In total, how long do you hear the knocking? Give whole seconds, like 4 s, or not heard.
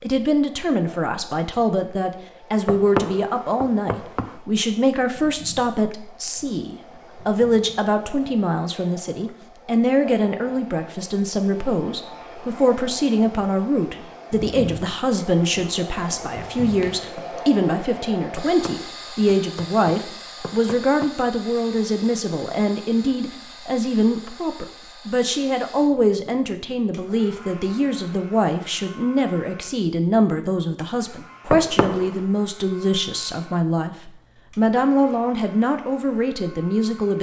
5 s.